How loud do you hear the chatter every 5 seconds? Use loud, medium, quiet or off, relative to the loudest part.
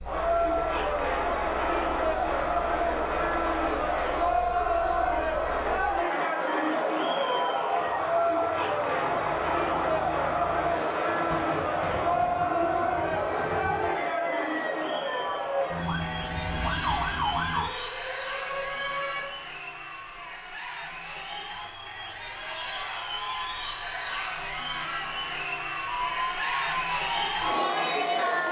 loud, loud, loud, medium, medium, loud.